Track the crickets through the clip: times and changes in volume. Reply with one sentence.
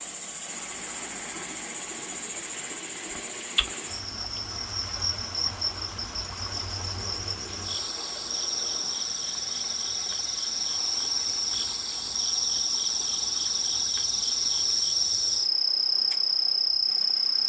The crickets can be heard from 0.0 to 17.4 s, getting louder.